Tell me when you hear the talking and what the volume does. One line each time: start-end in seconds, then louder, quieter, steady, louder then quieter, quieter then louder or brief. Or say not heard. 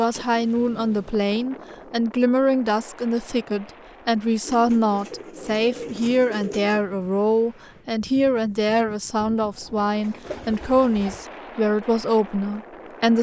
0.0-13.1 steady.